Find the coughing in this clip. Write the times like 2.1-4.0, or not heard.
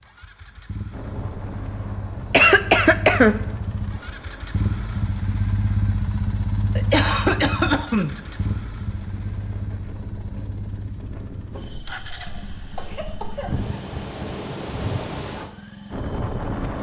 2.3-3.4, 6.8-8.2, 11.5-13.5.